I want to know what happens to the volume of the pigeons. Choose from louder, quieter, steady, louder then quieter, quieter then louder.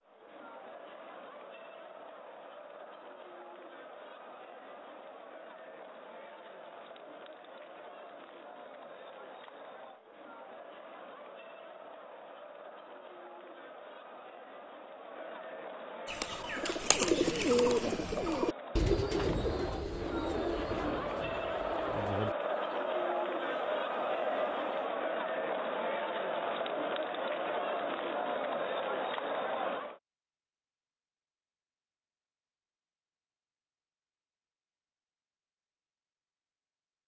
quieter.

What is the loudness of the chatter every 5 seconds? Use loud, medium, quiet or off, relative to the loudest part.
quiet, quiet, quiet, medium, loud, loud, off, off.